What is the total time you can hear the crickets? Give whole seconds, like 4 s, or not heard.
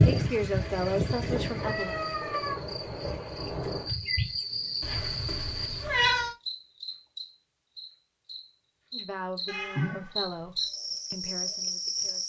12 s.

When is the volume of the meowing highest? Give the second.
6 s.